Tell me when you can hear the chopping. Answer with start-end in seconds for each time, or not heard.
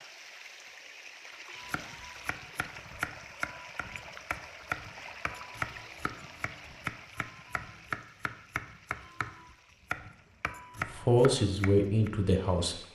1.6-12.1.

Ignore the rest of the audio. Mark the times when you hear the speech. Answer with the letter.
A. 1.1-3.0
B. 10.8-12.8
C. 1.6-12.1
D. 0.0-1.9
B.